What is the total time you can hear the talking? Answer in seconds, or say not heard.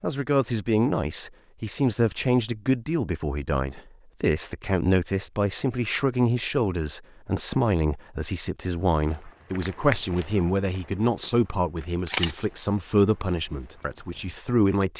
15 s.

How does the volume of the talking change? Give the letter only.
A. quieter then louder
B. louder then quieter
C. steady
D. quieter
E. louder
C.